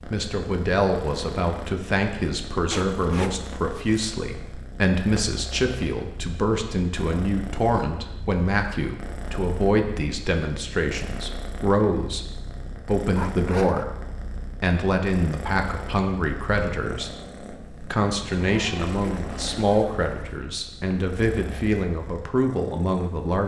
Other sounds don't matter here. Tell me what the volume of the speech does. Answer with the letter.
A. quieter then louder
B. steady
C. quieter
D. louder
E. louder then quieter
B.